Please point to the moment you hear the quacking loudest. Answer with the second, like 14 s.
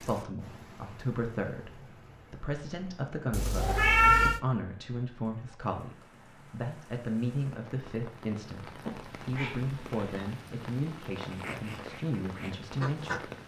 13 s.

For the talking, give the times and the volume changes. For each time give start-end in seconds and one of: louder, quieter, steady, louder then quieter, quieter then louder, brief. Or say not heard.
0.0-13.3 steady.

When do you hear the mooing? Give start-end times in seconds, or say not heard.
not heard.